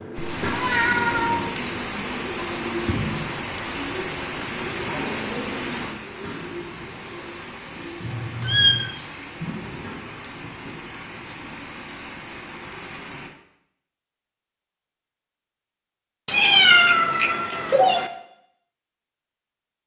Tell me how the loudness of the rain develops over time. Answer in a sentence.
The loudness of the rain goes down.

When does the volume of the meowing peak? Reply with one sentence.
The loudest moment of the meowing is at 17 seconds.